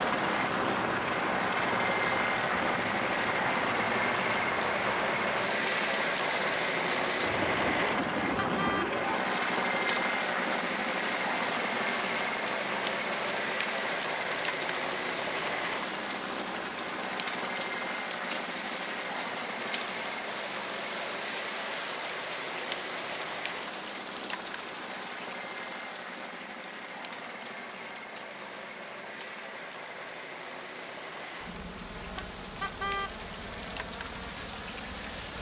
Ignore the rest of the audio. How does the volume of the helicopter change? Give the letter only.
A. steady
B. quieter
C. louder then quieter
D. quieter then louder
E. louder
B.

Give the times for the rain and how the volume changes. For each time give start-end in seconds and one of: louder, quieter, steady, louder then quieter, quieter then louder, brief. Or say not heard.
0.0-35.3 quieter.